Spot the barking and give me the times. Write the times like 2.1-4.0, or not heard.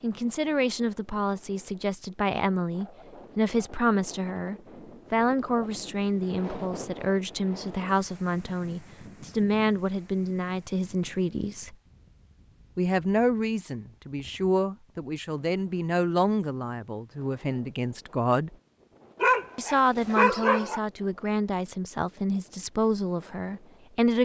19.2-20.8.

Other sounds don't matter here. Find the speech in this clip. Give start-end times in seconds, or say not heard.
0.0-11.8, 12.8-18.6, 19.6-24.2.